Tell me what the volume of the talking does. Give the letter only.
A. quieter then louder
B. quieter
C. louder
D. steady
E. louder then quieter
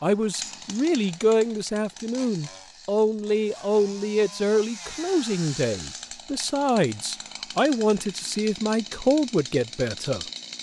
D.